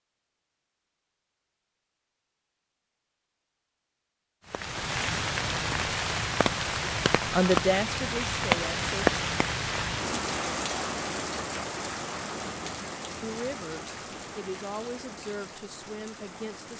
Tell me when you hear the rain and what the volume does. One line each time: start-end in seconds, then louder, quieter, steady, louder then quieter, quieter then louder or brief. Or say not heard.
4.5-16.7 quieter.